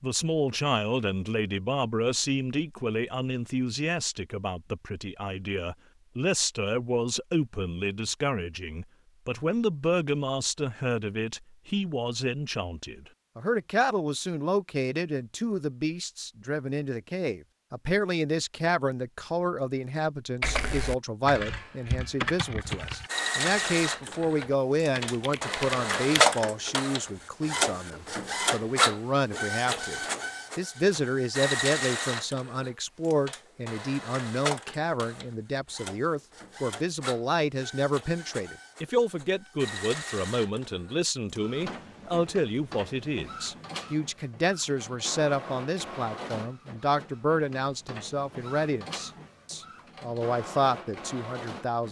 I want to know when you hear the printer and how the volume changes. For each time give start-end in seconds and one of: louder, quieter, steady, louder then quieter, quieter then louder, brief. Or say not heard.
22.6-51.8 quieter.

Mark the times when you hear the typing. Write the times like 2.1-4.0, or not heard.
20.4-26.2.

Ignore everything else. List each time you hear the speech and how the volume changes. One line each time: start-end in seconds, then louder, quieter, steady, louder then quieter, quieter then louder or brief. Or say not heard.
0.0-51.8 steady.